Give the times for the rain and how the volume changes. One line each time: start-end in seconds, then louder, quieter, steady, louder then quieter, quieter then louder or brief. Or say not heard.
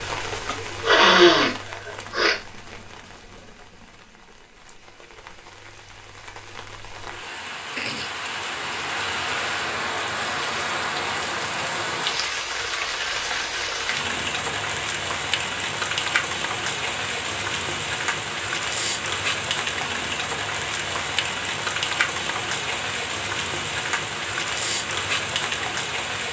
0.0-26.2 louder.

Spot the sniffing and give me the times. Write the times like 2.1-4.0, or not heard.
0.8-2.4.